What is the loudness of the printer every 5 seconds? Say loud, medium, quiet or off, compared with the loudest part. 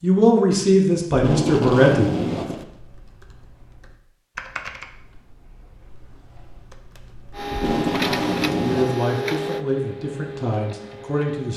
off, loud, medium.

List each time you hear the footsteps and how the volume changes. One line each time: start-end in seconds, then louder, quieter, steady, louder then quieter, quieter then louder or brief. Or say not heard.
not heard.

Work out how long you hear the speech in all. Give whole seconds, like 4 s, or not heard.
5 s.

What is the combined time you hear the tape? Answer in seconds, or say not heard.
3 s.